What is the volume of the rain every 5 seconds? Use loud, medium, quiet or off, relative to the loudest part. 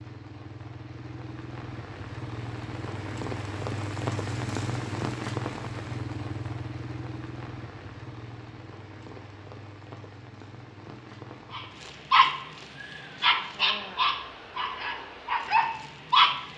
loud, loud, medium, medium.